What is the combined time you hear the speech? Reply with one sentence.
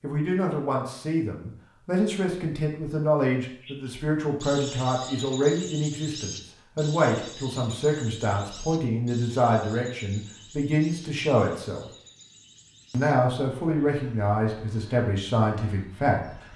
The speech can be heard for 15 seconds in total.